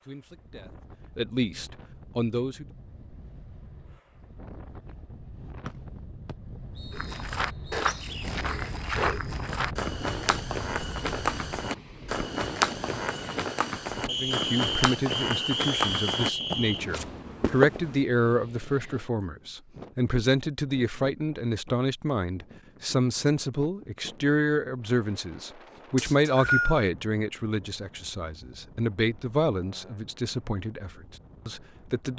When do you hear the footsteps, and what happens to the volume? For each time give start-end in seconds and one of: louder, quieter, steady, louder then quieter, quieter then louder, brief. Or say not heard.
6.9-17.9 steady.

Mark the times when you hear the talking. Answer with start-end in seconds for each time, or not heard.
0.0-2.6, 14.1-32.1.